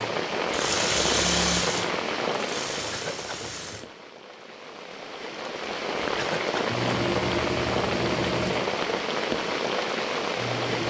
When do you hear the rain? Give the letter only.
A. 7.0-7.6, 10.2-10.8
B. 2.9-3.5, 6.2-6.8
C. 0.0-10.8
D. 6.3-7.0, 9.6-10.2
C.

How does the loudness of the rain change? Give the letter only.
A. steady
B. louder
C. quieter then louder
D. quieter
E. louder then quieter
C.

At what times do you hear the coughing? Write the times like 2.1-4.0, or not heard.
2.9-3.5, 6.2-6.8.